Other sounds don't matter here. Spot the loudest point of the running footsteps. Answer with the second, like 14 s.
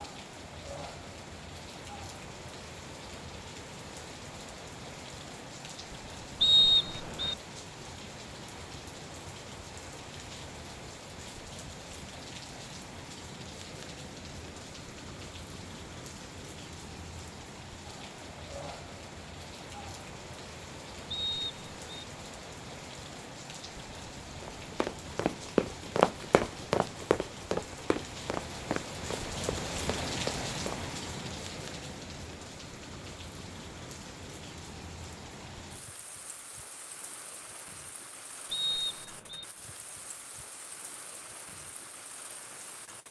26 s.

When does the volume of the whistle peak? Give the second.
7 s.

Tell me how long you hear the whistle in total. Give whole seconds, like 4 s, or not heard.
3 s.